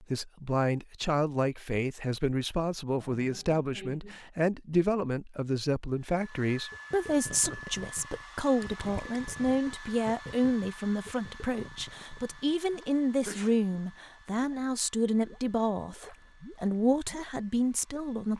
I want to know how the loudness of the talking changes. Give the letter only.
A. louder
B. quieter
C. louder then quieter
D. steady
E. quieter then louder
D.